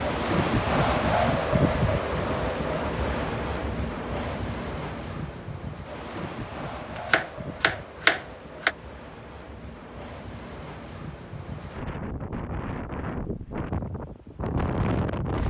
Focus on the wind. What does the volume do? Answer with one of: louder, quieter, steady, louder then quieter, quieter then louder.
quieter then louder.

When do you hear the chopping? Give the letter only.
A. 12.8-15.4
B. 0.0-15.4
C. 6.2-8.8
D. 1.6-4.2
C.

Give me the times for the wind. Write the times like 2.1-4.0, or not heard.
0.0-15.4.